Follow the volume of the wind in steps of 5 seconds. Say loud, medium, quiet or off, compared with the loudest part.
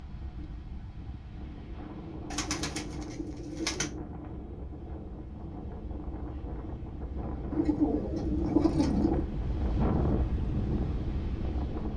medium, loud, loud.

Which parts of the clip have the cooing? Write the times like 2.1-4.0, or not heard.
2.3-3.9, 7.5-9.2.